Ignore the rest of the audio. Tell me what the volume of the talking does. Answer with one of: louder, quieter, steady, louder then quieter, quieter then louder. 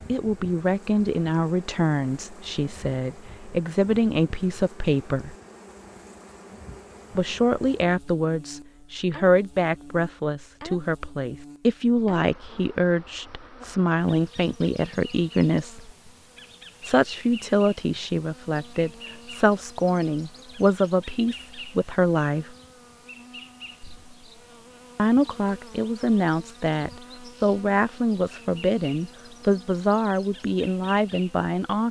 steady.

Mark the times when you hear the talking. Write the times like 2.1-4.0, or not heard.
0.1-5.3, 7.2-15.9, 16.8-22.4, 24.9-31.8.